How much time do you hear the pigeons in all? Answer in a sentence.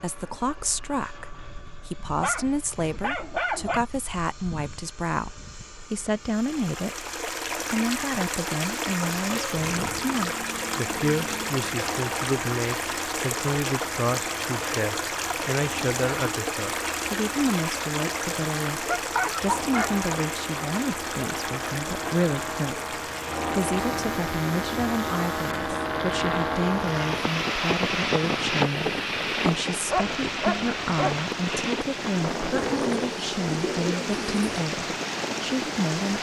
The pigeons can be heard for 2 seconds in total.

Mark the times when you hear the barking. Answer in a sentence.
You can hear the barking from 2.2 to 3.8 s, from 18.9 to 19.9 s and from 29.9 to 31.2 s.